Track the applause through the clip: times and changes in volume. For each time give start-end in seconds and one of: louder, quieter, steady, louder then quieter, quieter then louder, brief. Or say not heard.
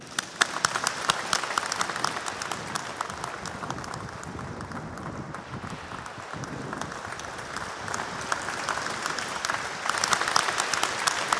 0.0-11.3 quieter then louder.